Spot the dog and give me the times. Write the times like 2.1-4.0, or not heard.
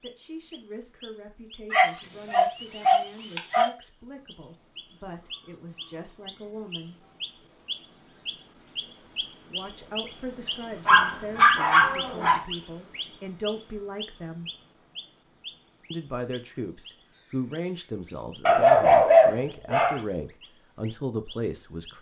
1.7-3.7, 10.8-12.4, 18.4-20.0.